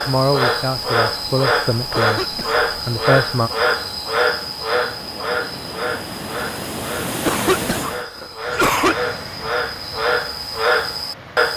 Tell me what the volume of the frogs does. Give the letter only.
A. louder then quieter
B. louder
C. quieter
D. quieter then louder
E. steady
D.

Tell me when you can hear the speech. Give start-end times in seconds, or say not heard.
0.0-3.5.